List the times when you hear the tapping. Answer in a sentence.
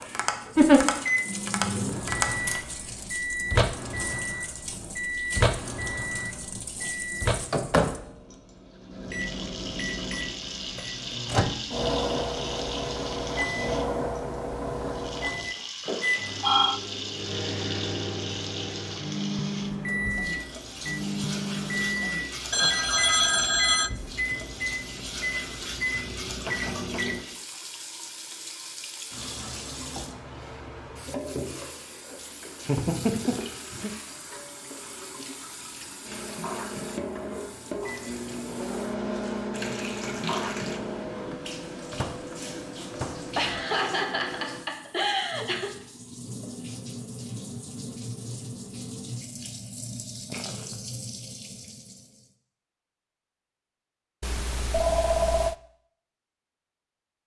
You can hear the tapping from 0.0 to 2.6 s.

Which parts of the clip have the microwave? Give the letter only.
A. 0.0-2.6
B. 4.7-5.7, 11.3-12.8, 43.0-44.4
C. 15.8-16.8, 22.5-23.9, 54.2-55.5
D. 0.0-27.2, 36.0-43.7
D.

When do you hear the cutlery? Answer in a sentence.
You can't hear the cutlery here.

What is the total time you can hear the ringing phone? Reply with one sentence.
You can hear the ringing phone for 4 seconds altogether.